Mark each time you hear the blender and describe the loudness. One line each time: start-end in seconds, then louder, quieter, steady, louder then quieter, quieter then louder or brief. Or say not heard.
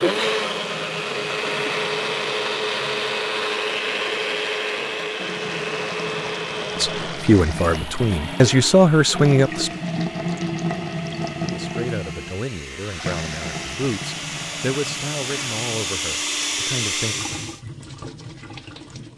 0.0-17.6 quieter then louder.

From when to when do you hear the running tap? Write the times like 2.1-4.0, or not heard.
0.2-19.1.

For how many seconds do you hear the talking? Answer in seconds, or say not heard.
9 s.